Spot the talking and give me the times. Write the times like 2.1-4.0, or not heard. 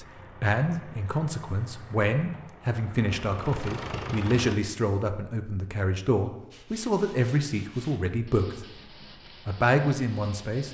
0.0-8.7, 9.4-10.7.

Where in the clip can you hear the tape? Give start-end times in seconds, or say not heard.
not heard.